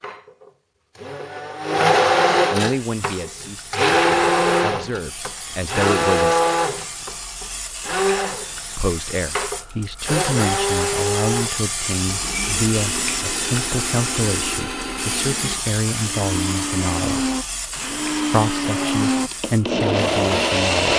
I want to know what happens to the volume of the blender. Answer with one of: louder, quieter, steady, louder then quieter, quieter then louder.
quieter then louder.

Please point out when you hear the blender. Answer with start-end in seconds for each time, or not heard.
0.0-20.9.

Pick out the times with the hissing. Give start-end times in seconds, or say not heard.
2.6-20.9.